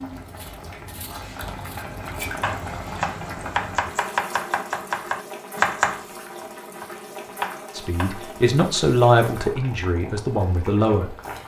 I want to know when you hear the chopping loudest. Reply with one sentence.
The loudest moment of the chopping is at 6 seconds.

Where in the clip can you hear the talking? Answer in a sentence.
You can hear the talking from 7.8 to 11.2 s.